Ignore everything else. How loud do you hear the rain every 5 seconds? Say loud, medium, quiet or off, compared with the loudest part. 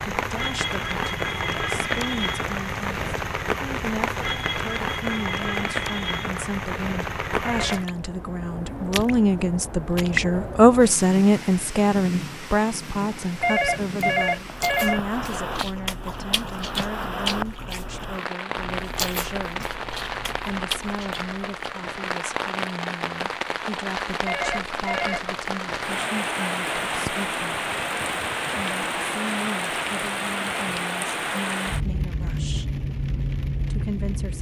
loud, loud, medium, medium, loud, loud, loud.